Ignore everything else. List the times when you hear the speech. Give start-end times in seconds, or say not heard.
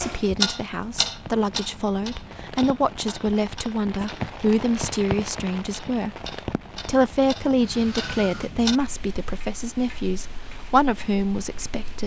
0.0-12.0.